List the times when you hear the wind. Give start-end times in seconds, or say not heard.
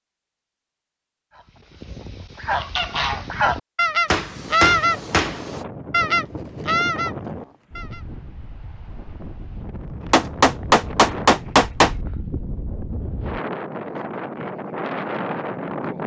4.2-16.0.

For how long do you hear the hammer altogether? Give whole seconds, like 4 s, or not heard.
3 s.